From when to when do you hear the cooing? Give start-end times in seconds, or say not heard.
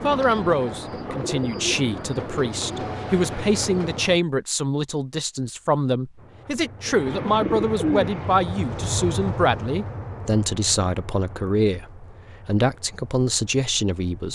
0.0-4.0, 6.8-8.4.